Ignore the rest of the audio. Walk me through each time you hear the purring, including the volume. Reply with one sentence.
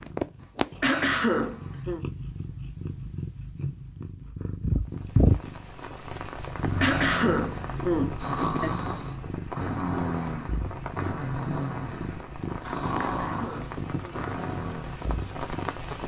You can hear the purring from 0.0 to 16.0 s, getting louder then quieter.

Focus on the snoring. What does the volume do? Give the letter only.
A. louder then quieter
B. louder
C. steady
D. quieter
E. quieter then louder
C.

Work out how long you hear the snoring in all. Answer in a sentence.
The snoring can be heard for 8 seconds in total.